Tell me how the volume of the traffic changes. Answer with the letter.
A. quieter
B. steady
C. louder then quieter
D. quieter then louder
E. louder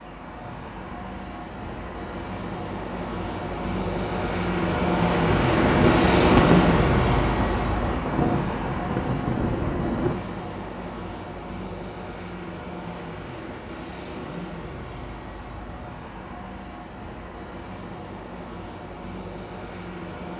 C.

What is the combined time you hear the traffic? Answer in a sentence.
You can hear the traffic for 20 seconds altogether.